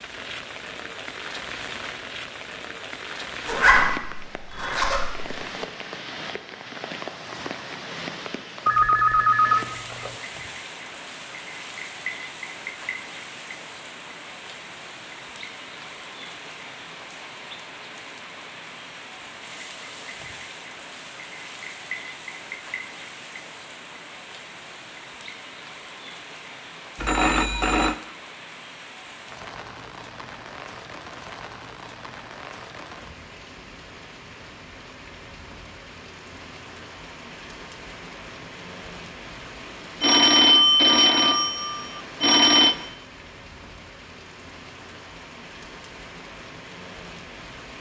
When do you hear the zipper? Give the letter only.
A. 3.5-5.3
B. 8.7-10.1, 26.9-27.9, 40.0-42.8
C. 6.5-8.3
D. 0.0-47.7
A.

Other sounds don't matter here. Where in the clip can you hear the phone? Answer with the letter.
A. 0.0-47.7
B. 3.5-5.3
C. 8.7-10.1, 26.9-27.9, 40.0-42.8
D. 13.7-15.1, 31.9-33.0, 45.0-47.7
C.